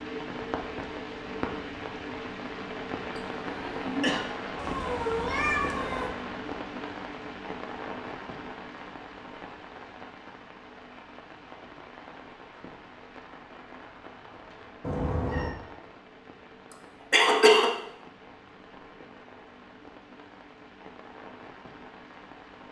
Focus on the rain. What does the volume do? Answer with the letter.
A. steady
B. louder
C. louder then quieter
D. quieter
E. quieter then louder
D.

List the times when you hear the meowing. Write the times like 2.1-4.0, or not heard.
4.5-6.2, 14.8-15.6.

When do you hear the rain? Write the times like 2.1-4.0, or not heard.
0.0-22.6.